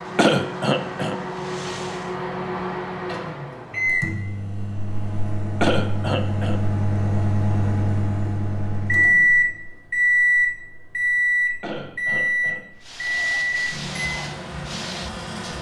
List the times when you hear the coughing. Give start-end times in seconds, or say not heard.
0.1-1.1, 5.6-6.6, 11.6-12.6.